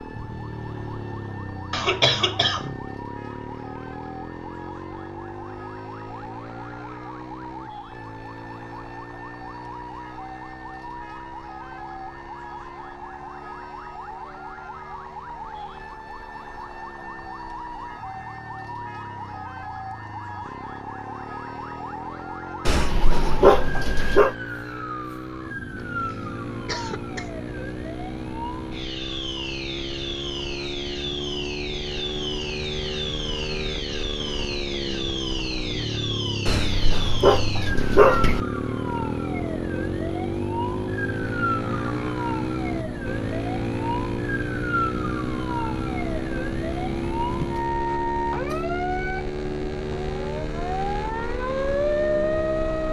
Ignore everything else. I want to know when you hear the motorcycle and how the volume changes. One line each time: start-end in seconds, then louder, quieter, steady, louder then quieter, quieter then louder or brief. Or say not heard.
0.0-52.8 quieter then louder.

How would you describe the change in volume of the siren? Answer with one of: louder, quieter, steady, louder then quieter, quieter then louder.
louder.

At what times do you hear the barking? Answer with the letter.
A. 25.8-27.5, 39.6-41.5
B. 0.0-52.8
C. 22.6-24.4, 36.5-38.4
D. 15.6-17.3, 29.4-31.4
C.